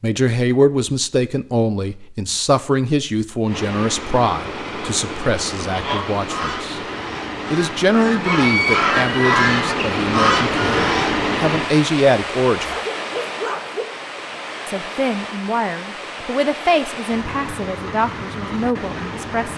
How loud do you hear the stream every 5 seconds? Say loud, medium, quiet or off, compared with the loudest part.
medium, loud, loud, medium.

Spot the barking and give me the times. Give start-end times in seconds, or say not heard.
12.7-13.8.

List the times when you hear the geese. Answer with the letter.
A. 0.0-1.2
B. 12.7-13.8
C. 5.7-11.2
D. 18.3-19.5
C.